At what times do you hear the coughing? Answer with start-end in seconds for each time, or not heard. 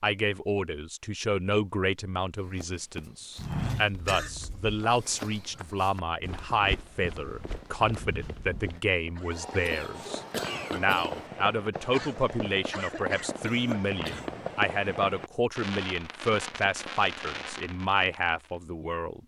3.9-4.8, 9.3-11.3, 13.4-14.3.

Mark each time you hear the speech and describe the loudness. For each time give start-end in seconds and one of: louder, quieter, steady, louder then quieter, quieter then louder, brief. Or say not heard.
0.0-19.2 steady.